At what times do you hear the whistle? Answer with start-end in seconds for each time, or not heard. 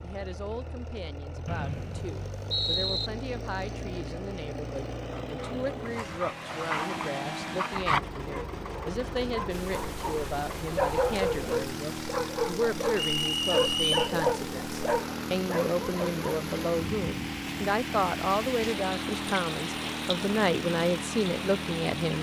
1.4-3.1, 13.2-14.2.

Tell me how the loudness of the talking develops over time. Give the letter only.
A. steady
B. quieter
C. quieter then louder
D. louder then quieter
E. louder
E.